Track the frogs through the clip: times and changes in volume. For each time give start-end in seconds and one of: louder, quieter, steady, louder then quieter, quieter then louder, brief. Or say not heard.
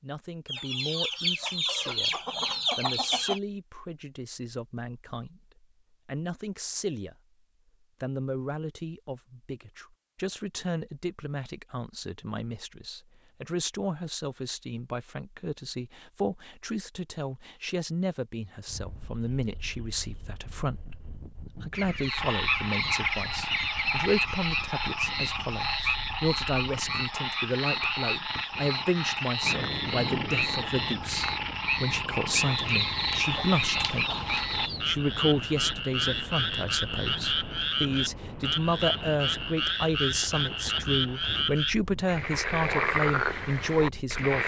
22.0-44.4 steady.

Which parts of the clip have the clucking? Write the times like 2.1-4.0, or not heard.
0.5-3.4, 21.7-24.5, 32.5-34.8.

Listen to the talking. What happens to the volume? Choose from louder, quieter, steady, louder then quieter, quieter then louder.
louder.